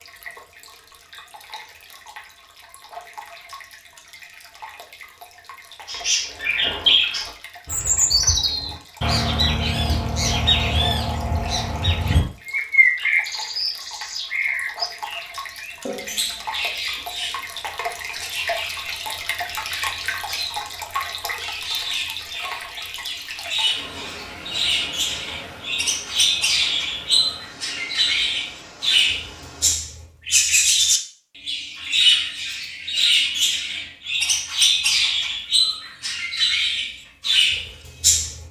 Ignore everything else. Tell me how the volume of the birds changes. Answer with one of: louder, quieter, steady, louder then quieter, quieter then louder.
quieter then louder.